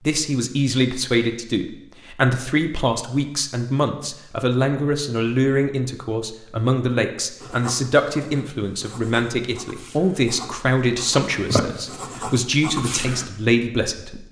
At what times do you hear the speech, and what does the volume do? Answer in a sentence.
You can hear the speech from 0.1 to 14.2 s, at a steady volume.